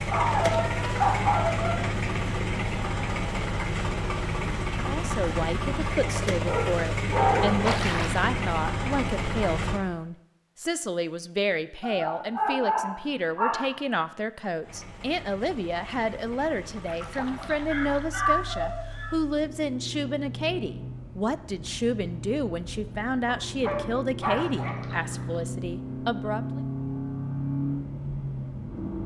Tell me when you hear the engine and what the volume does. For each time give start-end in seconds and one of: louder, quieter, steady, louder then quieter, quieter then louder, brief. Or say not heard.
0.0-9.8 steady
14.6-29.0 louder.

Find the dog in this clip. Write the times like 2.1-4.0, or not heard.
0.1-1.8, 6.0-7.6, 11.8-13.8, 17.6-19.1, 23.2-24.8.